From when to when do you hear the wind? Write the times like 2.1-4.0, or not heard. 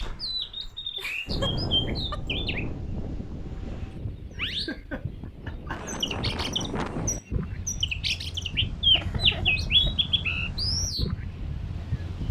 0.0-12.2.